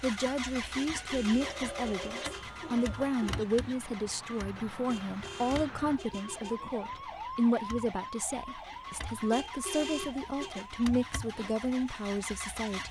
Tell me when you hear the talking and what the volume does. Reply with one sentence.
The talking can be heard from 0.0 to 12.8 s, at a steady volume.